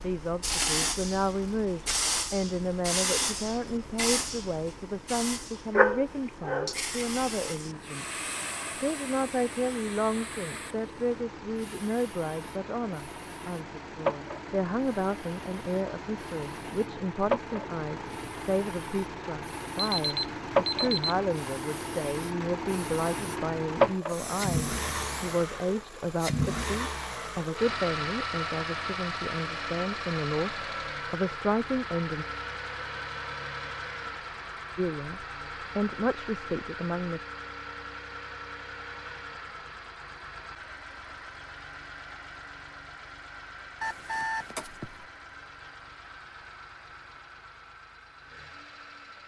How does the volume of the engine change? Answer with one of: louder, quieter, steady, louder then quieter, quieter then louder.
louder then quieter.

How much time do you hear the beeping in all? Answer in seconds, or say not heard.
3 s.